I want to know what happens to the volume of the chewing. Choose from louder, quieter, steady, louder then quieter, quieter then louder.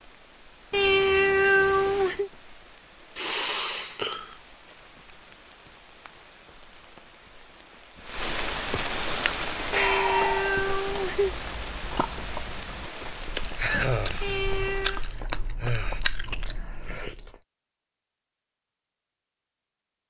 louder.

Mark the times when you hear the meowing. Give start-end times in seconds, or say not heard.
0.7-2.3, 9.7-11.3, 14.2-15.0.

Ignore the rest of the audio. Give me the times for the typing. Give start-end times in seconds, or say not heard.
not heard.